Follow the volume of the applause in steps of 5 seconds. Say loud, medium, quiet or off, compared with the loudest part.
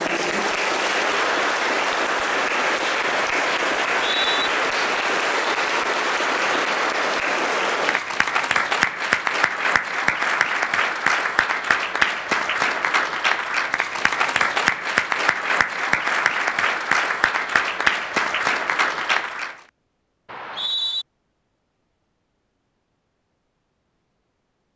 loud, loud, loud, loud, off.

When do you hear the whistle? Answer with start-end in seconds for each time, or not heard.
3.9-4.5, 20.2-21.1.